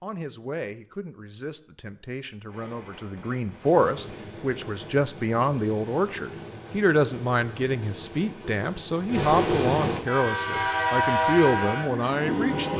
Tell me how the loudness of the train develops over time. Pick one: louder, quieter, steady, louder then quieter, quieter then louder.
louder.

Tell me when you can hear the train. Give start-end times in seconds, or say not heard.
2.5-12.7.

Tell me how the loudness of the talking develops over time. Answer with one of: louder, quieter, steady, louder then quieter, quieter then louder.
louder.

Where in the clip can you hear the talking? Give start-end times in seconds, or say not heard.
0.0-12.7.